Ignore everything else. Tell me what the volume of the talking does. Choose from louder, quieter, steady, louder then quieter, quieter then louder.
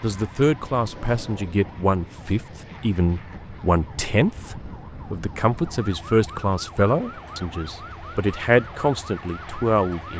steady.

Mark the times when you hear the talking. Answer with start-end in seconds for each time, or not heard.
0.0-10.1.